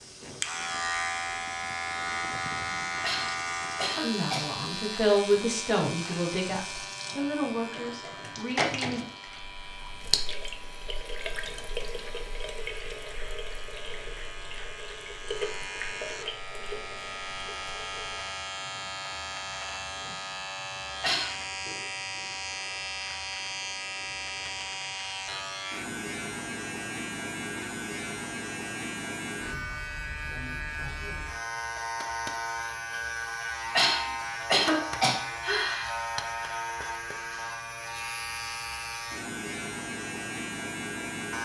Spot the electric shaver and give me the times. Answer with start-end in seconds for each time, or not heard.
0.0-41.3.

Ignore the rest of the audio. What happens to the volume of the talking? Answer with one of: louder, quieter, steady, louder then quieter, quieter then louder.
quieter.